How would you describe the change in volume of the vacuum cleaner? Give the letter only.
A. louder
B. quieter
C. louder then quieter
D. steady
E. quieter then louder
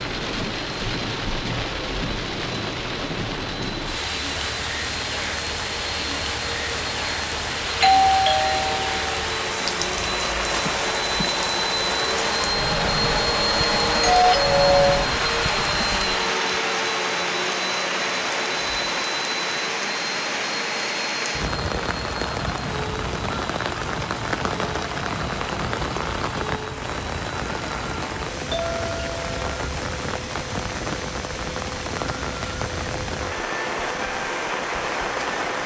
C.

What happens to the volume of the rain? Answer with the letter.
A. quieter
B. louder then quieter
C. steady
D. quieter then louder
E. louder
C.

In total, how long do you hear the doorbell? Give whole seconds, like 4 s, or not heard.
3 s.